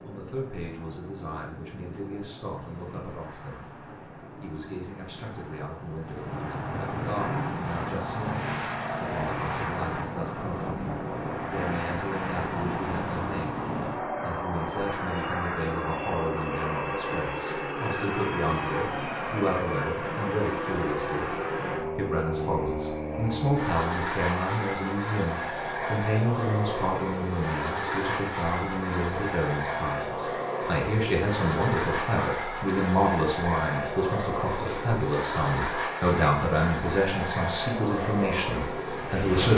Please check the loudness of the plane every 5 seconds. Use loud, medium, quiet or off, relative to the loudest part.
quiet, loud, loud, loud, loud, loud, loud, loud.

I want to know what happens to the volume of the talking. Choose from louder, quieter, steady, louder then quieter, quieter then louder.
louder.